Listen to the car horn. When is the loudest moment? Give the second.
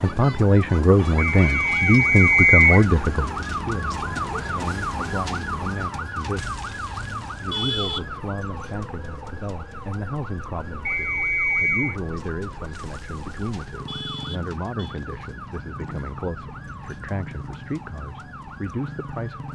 8 s.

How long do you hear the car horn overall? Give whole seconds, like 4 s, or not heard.
4 s.